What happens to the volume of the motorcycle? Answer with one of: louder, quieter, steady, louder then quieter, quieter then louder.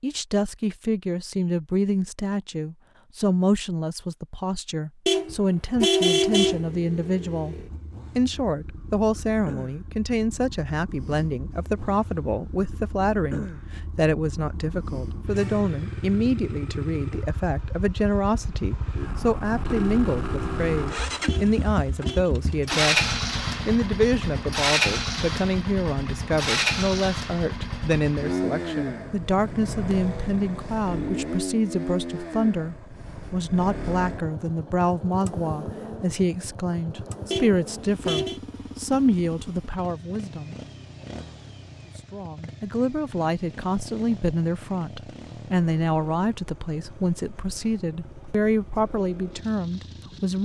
louder then quieter.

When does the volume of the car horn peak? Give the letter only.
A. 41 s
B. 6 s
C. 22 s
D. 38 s
B.